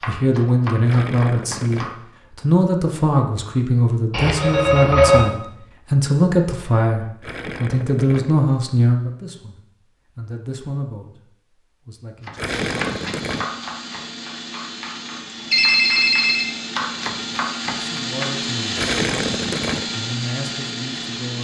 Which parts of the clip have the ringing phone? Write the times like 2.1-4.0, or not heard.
4.1-5.2, 15.5-16.5.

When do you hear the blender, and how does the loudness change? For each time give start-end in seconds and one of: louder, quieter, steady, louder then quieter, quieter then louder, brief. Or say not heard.
12.4-21.3 louder.